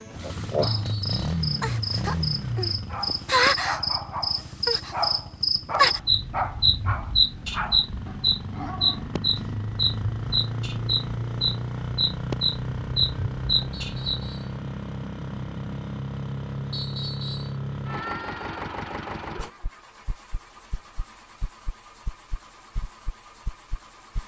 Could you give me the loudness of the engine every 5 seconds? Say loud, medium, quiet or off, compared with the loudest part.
loud, medium, loud, loud, quiet.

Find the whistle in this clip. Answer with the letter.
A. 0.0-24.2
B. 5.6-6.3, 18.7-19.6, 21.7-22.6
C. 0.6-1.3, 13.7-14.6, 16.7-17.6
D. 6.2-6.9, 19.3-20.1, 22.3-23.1
C.